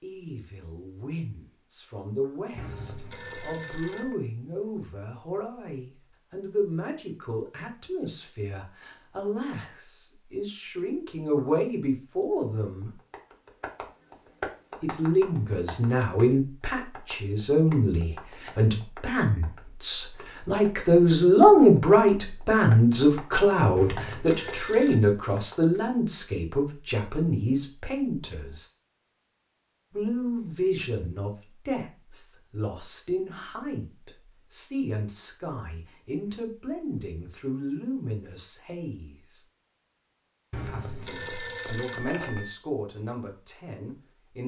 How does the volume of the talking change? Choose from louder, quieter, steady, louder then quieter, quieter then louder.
louder then quieter.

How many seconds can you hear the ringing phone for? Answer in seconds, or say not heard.
5 s.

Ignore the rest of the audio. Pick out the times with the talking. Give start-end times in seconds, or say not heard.
0.0-12.9, 14.8-28.6, 29.9-39.4, 40.6-44.4.